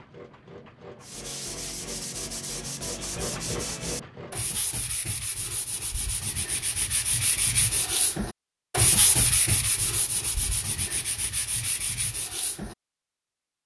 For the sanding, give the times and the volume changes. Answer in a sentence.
The sanding can be heard from 1.0 to 12.8 s, getting louder then quieter.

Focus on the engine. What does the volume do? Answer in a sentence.
The loudness of the engine goes up.